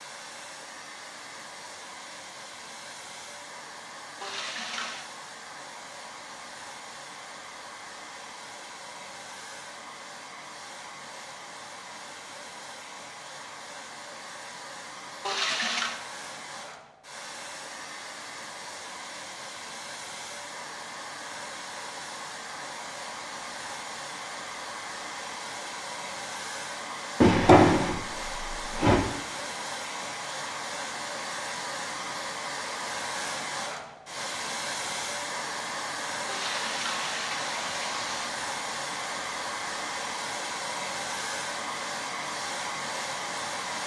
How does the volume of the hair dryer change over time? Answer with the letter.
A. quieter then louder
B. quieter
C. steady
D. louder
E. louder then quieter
D.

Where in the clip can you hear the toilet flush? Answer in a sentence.
The toilet flush can be heard from 4.2 to 5.1 s, from 15.2 to 16.0 s and from 36.2 to 38.3 s.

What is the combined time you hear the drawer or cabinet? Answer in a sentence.
You can hear the drawer or cabinet for 2 seconds altogether.